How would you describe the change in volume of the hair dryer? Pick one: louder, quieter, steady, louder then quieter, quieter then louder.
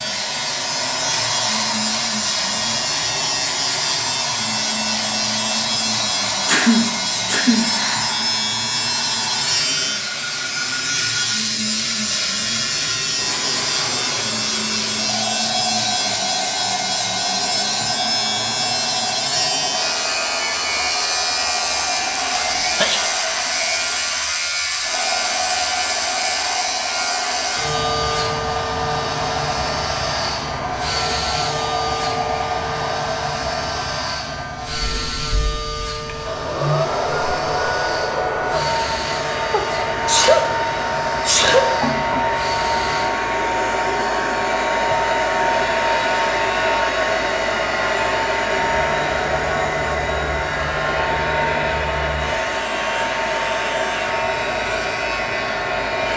louder.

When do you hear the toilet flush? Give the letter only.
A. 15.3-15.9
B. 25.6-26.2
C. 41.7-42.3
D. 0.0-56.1
C.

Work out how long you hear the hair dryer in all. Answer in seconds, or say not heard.
56 s.